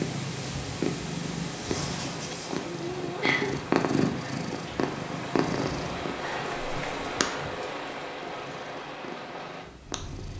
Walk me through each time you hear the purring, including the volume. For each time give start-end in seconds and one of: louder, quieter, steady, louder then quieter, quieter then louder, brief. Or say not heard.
0.0-10.3 quieter.